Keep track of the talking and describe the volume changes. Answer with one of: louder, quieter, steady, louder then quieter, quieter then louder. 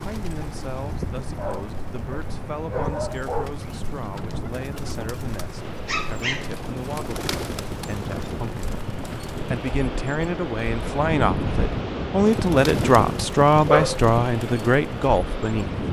louder.